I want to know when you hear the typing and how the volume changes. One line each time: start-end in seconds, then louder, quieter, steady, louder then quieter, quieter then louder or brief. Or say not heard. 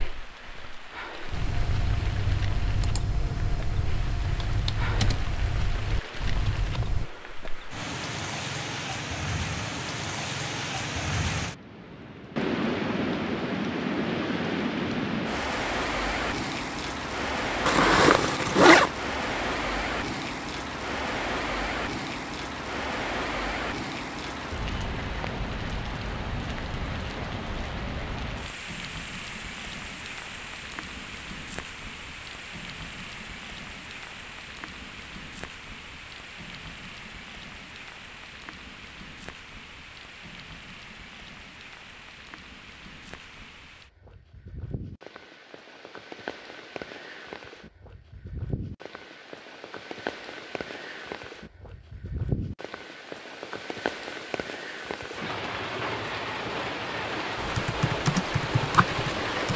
1.3-7.0 steady
57.4-59.5 brief.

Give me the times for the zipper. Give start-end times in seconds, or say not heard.
17.6-18.9.